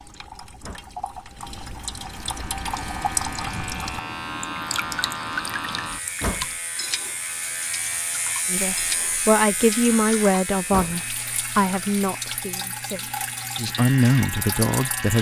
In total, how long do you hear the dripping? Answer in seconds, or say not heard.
15 s.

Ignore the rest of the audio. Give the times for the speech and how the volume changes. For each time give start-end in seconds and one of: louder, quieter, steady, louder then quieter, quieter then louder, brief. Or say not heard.
8.5-15.1 quieter then louder.